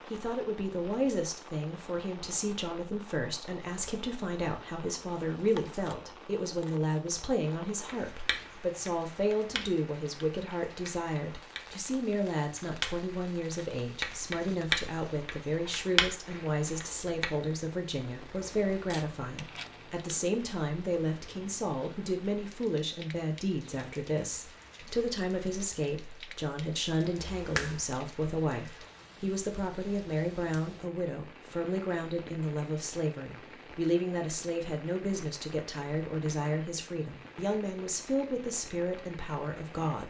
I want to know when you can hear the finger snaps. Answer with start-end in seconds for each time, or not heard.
27.1-27.9.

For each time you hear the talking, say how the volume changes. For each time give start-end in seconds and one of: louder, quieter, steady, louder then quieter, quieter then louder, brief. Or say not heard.
0.1-40.0 steady.